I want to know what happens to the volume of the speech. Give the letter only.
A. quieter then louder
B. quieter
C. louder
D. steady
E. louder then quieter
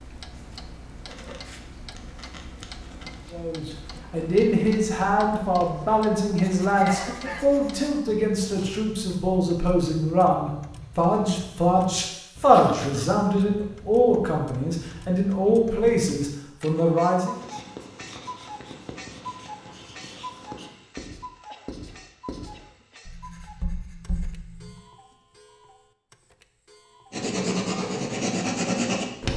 D.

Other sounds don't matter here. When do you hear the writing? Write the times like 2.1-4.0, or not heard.
0.0-8.8, 17.2-24.8, 27.1-29.3.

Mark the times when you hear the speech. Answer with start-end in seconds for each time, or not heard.
3.3-17.4.